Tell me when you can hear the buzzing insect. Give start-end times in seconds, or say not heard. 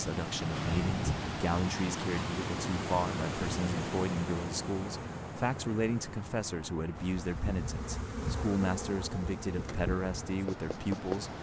7.0-11.3.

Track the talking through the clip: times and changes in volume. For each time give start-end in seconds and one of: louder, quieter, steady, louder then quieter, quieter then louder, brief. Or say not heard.
0.0-11.3 steady.